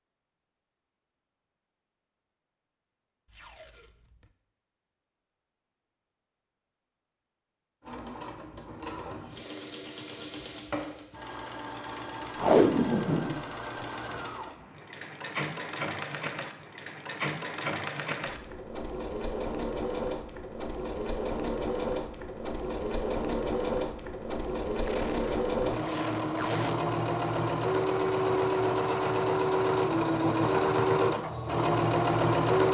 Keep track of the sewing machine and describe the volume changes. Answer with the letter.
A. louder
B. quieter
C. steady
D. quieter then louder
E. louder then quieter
A.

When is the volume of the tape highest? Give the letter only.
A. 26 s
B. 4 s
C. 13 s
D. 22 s
C.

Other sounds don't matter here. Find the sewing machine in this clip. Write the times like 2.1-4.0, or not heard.
7.8-32.6.